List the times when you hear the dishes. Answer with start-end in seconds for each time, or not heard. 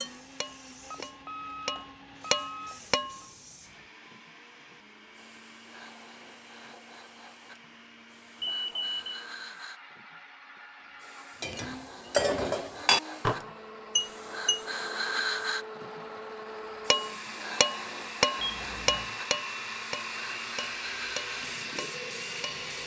0.0-3.2, 11.4-14.6, 16.9-22.4.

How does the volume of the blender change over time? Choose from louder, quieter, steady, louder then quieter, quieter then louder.
louder.